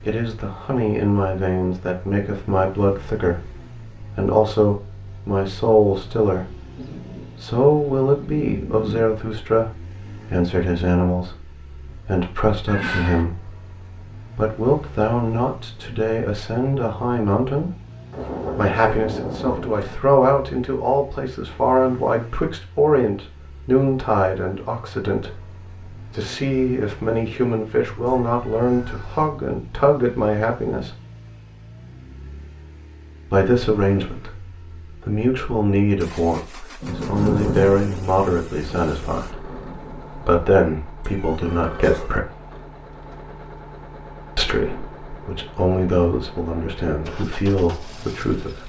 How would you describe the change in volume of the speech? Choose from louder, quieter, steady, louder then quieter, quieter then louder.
steady.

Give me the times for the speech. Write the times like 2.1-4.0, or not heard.
0.0-6.5, 7.3-13.6, 14.3-17.7, 18.6-30.9, 33.3-42.2, 44.4-48.6.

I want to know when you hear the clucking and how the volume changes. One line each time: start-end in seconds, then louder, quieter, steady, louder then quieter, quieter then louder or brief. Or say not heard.
not heard.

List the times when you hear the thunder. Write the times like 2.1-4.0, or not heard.
6.8-9.1, 18.1-19.9, 36.8-40.3.